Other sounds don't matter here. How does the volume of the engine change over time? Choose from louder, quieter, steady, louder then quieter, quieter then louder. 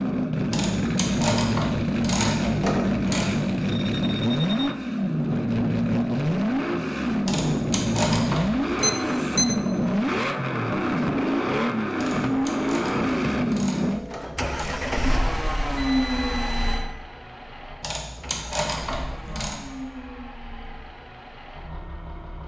quieter.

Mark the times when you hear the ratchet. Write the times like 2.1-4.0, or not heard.
0.5-3.3, 7.2-8.8, 11.9-14.8, 17.8-19.6.